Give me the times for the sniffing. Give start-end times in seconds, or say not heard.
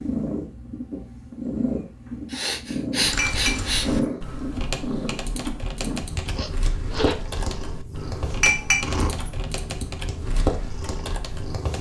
2.3-3.9, 6.2-7.2.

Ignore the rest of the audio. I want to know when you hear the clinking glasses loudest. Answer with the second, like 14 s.
9 s.